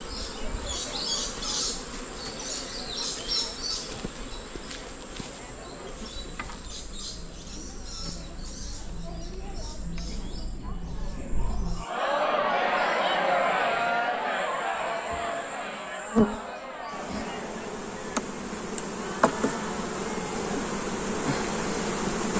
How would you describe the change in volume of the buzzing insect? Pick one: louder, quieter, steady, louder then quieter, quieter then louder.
quieter then louder.